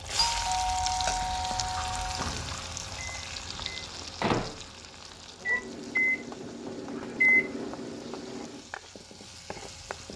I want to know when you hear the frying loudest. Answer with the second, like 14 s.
1 s.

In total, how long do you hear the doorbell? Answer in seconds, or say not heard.
2 s.